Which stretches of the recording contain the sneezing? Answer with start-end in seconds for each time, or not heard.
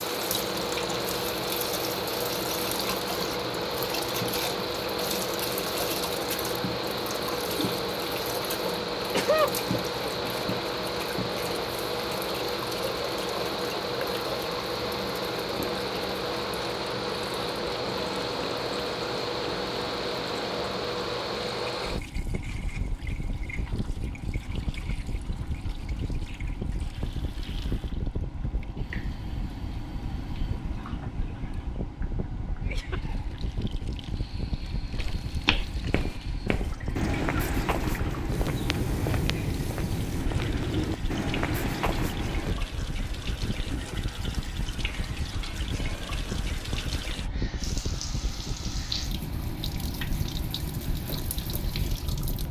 8.7-9.6.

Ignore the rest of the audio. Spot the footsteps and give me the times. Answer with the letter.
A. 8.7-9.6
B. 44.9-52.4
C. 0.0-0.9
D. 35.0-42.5
D.